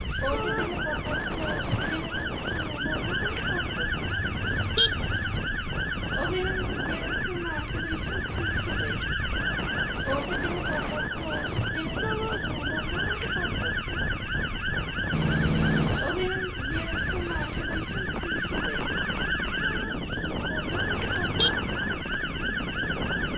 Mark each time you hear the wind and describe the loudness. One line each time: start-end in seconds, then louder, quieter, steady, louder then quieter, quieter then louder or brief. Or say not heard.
0.0-23.3 steady.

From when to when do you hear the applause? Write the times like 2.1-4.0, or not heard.
not heard.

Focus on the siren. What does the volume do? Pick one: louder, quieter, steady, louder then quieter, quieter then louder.
steady.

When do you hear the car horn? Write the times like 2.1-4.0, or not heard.
4.0-5.4, 8.3-9.1, 20.6-21.5.